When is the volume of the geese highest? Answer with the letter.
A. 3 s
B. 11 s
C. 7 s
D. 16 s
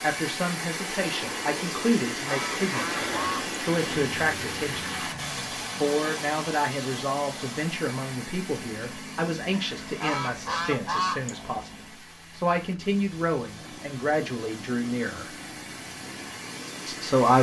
B.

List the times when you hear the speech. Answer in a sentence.
The speech can be heard from 0.0 to 4.9 s, from 5.8 to 15.3 s and from 16.9 to 17.3 s.